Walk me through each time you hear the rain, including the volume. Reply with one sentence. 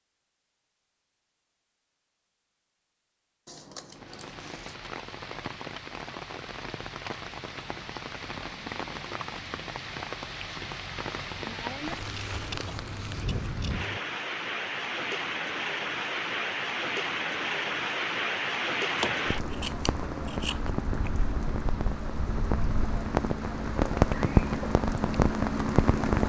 The rain can be heard from 3.9 to 26.2 s, getting louder.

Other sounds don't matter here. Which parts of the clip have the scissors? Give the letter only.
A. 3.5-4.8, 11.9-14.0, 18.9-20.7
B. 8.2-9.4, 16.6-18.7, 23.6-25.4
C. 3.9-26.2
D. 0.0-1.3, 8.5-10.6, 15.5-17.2
A.